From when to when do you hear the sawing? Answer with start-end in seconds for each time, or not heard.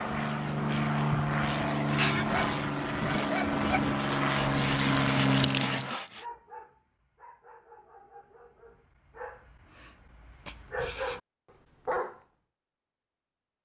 4.3-6.2.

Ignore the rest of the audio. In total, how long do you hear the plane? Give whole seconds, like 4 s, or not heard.
6 s.